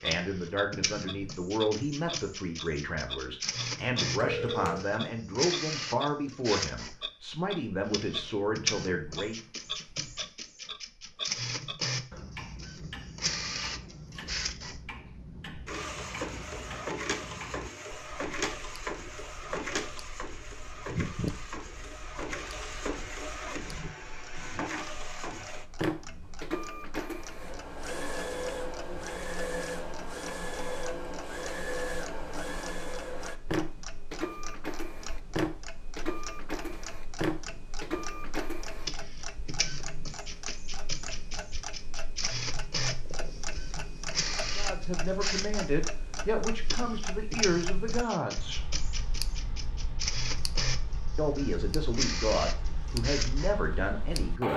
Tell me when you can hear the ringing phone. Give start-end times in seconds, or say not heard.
4.2-4.8.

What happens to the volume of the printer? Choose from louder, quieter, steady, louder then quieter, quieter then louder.
steady.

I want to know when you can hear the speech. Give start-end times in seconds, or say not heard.
0.0-9.4, 44.5-48.6, 51.1-54.5.